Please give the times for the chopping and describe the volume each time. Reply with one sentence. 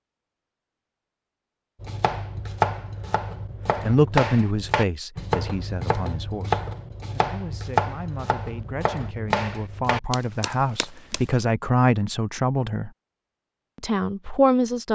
The chopping can be heard from 1.8 to 11.2 s, at a steady volume.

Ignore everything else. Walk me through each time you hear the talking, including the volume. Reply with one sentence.
The talking can be heard from 3.8 to 12.9 s, getting quieter then louder; and briefly from 13.8 to 14.8 s.